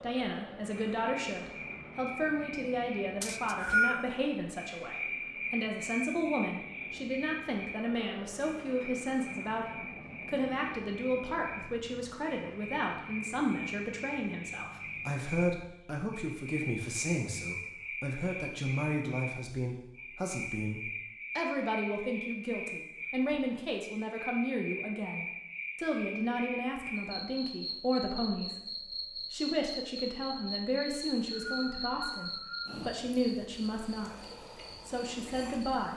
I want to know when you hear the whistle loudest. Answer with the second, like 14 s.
4 s.